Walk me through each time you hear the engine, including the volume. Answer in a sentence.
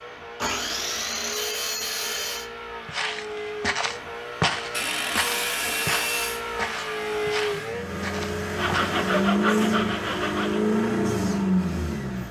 The engine can be heard from 0.0 to 12.2 s, getting louder.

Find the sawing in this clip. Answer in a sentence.
The sawing can be heard from 0.3 to 2.5 s, from 4.7 to 6.4 s and from 8.6 to 10.7 s.